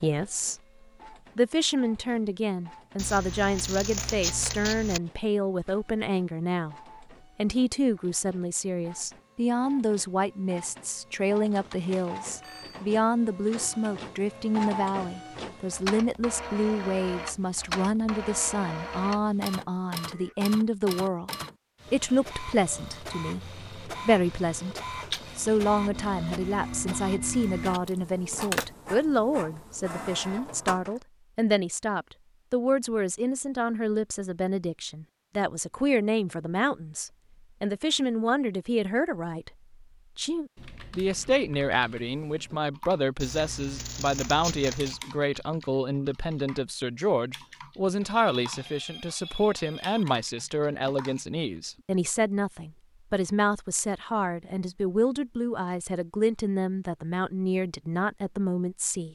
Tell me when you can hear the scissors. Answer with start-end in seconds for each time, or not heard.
3.0-5.0, 27.9-28.7, 43.2-45.0.